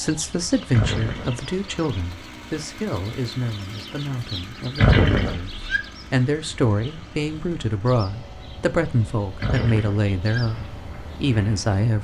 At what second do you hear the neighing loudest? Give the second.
5 s.